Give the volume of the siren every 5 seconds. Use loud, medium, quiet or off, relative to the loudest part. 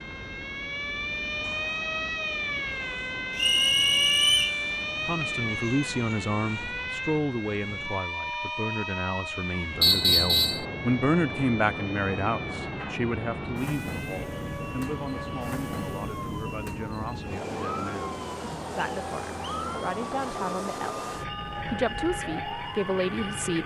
loud, loud, medium, medium, medium.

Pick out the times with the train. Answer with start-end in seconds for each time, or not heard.
0.0-23.6.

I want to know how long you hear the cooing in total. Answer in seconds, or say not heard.
not heard.